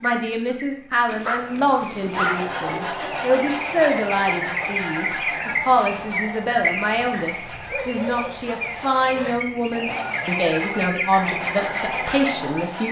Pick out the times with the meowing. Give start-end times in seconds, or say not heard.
not heard.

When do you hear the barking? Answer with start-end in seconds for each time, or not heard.
1.1-2.5, 7.7-9.3.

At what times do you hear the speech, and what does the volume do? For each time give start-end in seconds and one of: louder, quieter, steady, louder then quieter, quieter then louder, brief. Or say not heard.
0.0-12.8 steady.